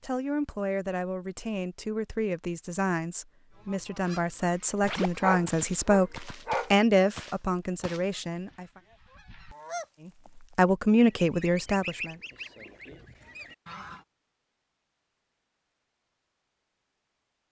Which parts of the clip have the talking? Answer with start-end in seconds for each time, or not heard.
0.0-8.8, 10.1-12.2.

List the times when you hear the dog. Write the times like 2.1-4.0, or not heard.
4.8-6.8.